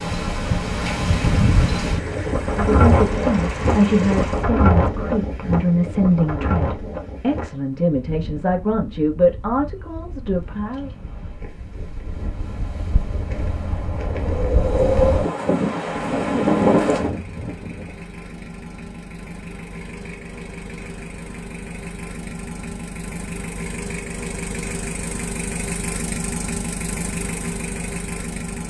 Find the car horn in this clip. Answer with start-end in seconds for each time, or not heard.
not heard.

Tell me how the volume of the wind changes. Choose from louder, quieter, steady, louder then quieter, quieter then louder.
quieter then louder.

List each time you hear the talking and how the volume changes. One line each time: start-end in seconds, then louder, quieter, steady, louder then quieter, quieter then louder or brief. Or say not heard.
2.5-10.9 steady.